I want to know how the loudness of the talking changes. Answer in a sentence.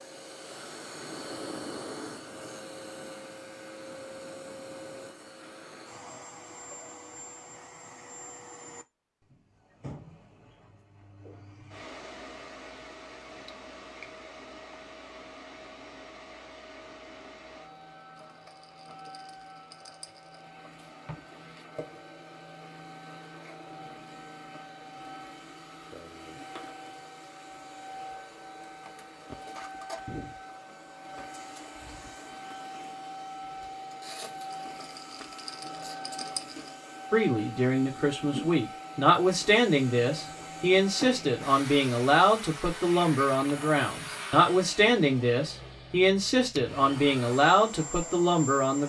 The loudness of the talking stays about the same.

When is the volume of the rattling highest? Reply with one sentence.
The volume of the rattling peaks at 36 seconds.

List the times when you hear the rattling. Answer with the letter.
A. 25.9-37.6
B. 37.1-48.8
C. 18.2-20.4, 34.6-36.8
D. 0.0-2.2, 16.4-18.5
C.